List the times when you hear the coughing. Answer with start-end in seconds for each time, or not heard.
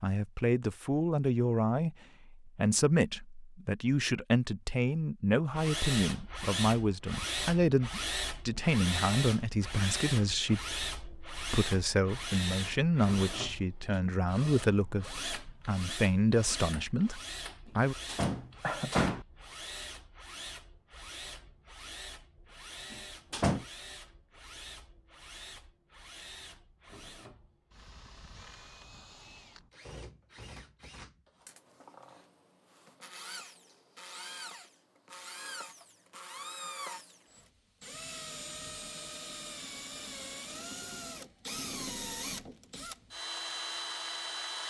18.6-19.1.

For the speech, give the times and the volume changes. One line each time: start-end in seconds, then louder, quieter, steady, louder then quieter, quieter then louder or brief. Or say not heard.
0.0-17.9 steady.